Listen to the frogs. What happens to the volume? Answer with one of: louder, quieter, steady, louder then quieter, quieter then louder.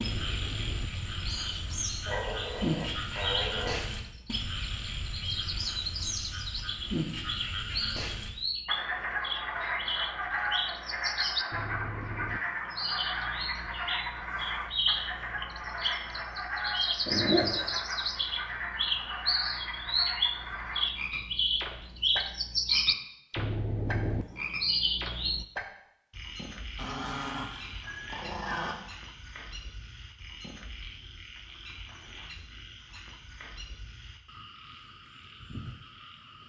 quieter.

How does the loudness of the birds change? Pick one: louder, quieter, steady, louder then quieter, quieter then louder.
louder.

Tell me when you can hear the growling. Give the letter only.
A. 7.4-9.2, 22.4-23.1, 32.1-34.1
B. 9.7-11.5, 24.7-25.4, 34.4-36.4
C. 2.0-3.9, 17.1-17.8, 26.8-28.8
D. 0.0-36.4
C.